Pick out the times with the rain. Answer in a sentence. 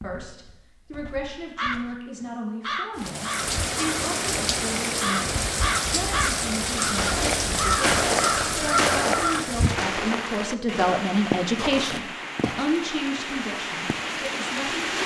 The rain can be heard from 3.0 to 15.0 s.